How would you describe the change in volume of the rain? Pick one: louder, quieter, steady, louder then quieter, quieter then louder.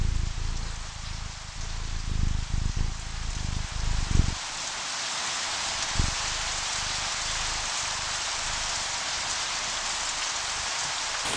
louder.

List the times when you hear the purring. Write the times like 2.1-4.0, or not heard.
0.0-11.1.